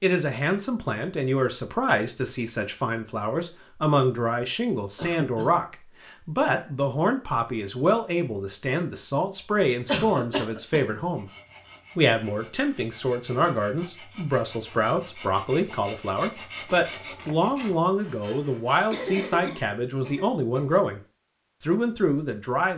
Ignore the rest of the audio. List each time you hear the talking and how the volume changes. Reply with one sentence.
The talking can be heard from 0.0 to 11.2 s, at a steady volume; from 11.9 to 21.0 s, at a steady volume; and briefly from 21.6 to 22.7 s.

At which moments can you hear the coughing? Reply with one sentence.
You can hear the coughing from 5.0 to 5.5 s, from 9.8 to 10.9 s and from 18.9 to 20.7 s.